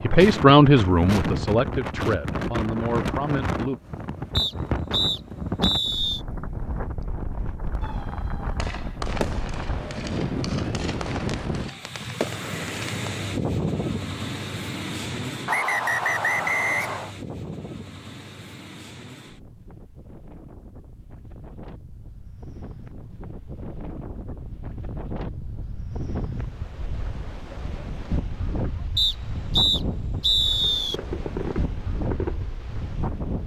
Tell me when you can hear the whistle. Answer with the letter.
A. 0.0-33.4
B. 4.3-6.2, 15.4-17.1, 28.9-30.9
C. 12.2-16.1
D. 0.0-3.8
B.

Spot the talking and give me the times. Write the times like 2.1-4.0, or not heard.
0.0-3.8.